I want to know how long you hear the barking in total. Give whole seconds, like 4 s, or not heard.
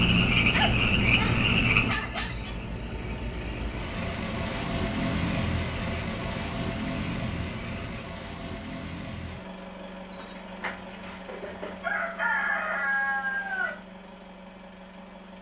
2 s.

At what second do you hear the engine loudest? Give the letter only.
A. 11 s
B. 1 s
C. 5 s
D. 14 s
C.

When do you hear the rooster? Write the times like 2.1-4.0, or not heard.
10.1-13.8.